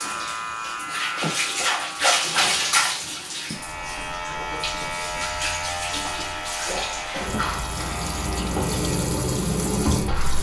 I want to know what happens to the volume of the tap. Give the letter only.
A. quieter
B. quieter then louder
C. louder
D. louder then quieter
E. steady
B.